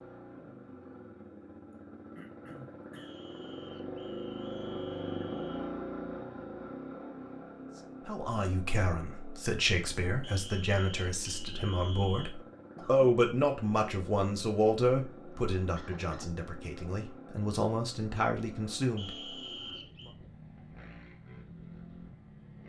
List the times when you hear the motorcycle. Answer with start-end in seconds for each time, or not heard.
0.0-22.6.